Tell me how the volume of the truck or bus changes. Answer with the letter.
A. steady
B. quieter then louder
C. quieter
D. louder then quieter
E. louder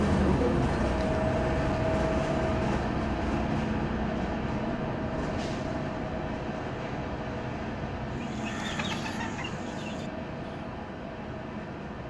C.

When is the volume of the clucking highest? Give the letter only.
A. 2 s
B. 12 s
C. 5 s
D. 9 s
D.